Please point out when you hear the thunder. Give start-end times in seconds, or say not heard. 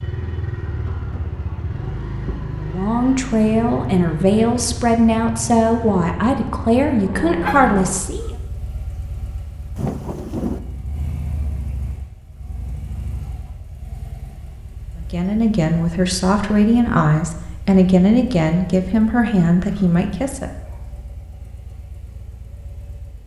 9.8-10.6.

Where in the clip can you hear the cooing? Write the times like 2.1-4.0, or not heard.
not heard.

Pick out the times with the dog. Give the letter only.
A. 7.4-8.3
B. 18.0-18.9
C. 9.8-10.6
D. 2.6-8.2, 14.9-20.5
A.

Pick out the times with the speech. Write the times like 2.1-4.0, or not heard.
2.6-8.2, 14.9-20.5.